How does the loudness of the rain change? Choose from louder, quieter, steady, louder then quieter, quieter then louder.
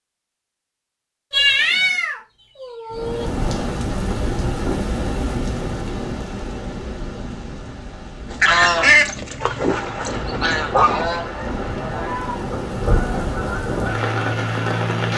quieter then louder.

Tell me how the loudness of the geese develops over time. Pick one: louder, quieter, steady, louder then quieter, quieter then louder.
quieter.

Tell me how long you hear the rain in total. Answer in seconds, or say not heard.
12 s.